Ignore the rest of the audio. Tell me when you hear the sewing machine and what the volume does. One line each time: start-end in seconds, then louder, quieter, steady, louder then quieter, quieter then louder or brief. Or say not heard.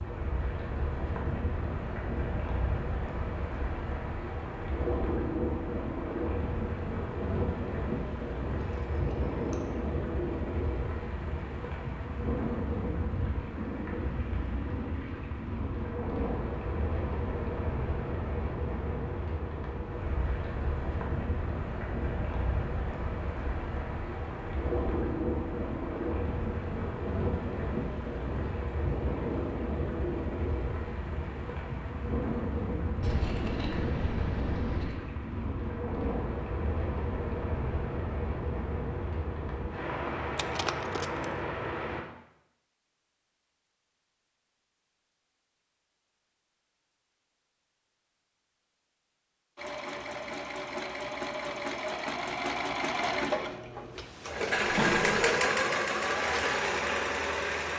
49.5-57.7 louder.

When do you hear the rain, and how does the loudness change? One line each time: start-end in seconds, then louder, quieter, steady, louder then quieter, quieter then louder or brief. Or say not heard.
0.0-42.0 steady.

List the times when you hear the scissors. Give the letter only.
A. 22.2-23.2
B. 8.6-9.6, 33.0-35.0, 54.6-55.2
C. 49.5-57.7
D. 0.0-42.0
B.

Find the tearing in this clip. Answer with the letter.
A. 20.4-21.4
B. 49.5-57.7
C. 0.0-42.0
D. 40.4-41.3
D.